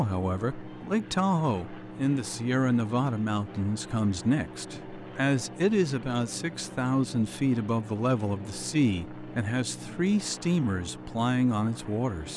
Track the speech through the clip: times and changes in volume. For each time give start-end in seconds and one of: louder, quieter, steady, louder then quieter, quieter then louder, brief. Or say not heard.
0.0-12.3 steady.